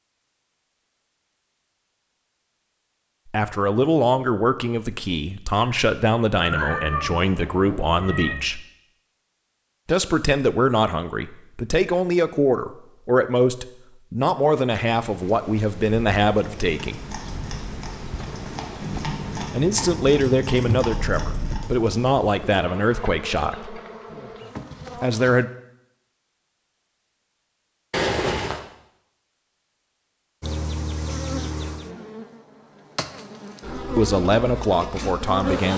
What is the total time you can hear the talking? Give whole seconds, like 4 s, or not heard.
19 s.